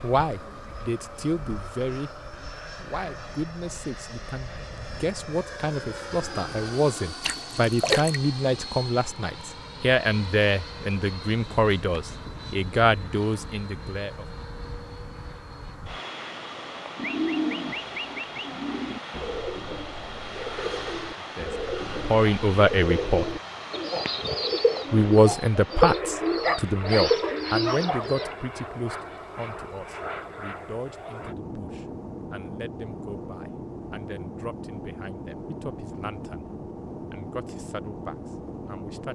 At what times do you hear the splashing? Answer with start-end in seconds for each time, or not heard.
7.2-8.2.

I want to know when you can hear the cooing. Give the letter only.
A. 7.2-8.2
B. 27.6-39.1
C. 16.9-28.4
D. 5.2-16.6
C.